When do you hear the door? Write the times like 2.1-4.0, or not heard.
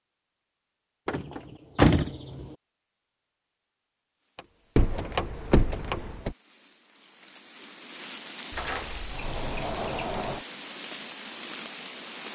1.1-2.5, 4.3-6.3, 8.5-10.4.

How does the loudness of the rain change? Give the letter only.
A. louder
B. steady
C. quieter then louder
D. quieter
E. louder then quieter
A.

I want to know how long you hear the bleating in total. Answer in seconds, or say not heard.
not heard.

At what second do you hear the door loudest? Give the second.
2 s.